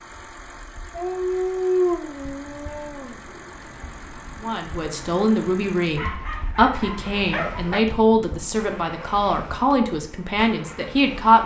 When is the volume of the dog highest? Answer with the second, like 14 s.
2 s.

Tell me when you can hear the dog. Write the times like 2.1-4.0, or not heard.
0.9-3.5, 6.0-7.8.